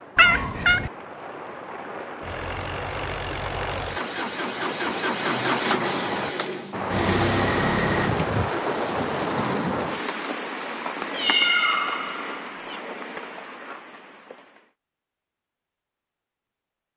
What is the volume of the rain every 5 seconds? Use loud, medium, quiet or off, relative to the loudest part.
medium, loud, medium, off.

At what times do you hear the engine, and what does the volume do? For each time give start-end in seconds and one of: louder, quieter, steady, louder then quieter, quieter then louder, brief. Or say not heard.
2.2-8.2 louder.